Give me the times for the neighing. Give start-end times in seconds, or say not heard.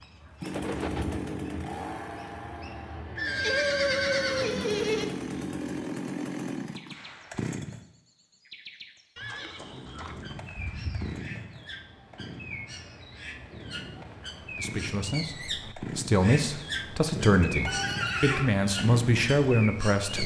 3.1-5.0, 9.2-11.2, 17.6-18.5.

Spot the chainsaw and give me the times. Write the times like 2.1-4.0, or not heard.
0.4-7.8, 10.0-20.2.